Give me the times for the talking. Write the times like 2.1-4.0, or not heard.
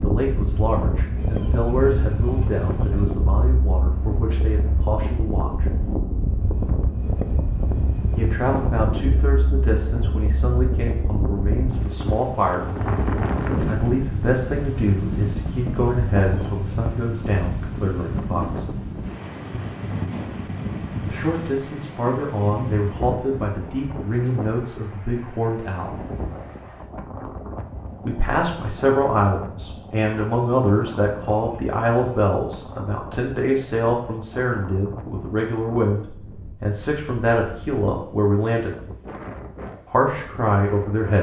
0.0-5.7, 8.2-12.7, 13.7-18.7, 21.1-25.9, 28.1-38.7, 39.9-41.1.